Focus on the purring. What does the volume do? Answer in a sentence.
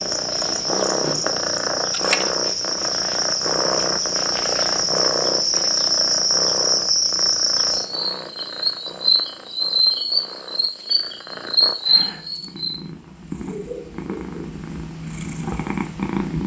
The loudness of the purring goes down, then up.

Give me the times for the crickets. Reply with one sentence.
You can hear the crickets from 0.0 to 12.8 s.